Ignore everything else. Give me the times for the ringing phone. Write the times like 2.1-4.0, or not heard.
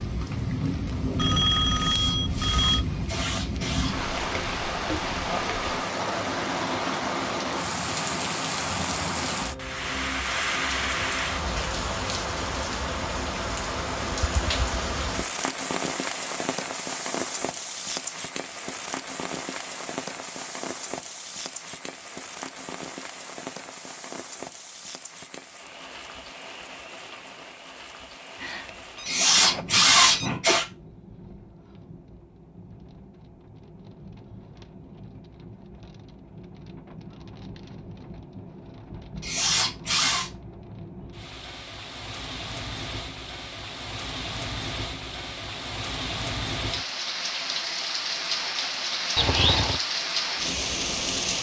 1.1-2.9, 28.4-30.3, 49.1-49.8.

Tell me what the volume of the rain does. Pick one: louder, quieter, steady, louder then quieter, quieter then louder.
quieter then louder.